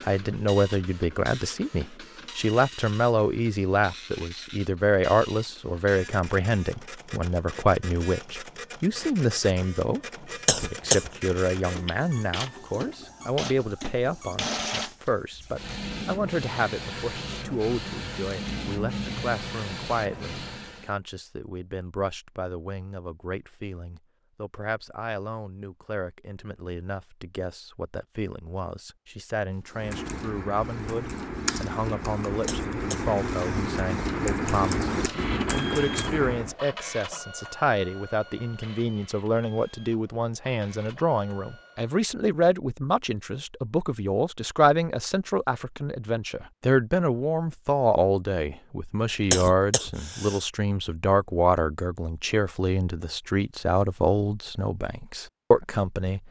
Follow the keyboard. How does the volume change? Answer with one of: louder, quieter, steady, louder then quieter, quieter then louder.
louder.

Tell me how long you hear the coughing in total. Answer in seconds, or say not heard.
3 s.